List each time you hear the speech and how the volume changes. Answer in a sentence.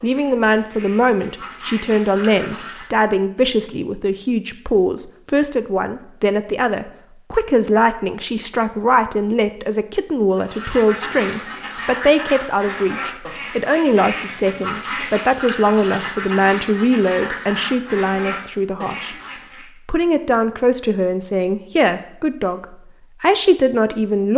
You can hear the speech from 0.0 to 19.1 s, at a steady volume; and from 19.9 to 24.3 s, getting quieter then louder.